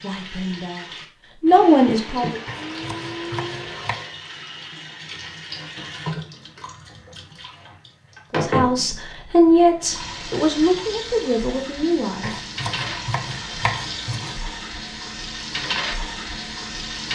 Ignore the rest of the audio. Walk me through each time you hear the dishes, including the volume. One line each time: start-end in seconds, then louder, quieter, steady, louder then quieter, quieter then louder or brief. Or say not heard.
not heard.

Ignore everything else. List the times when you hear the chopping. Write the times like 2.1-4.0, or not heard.
2.5-4.0, 12.2-14.4.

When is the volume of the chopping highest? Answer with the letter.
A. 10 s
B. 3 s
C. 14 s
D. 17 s
C.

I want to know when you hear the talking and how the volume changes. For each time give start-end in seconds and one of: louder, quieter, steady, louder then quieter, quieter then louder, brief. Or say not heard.
0.0-2.4 brief
8.3-12.4 louder then quieter.